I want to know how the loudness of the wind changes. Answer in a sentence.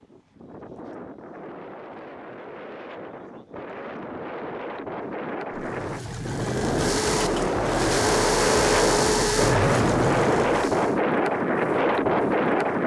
The loudness of the wind goes up.